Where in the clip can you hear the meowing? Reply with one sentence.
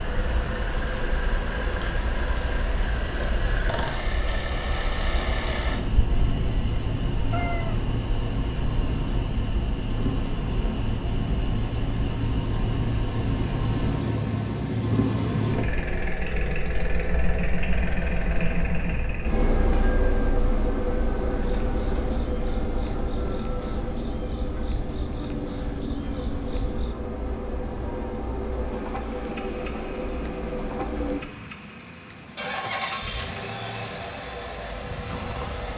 The meowing can be heard from 7.3 to 7.8 s.